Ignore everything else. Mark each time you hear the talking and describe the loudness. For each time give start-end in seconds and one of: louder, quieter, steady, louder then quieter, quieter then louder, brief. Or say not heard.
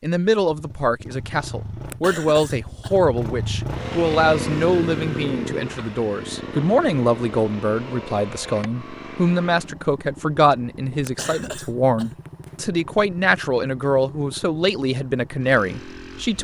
0.0-16.3 steady.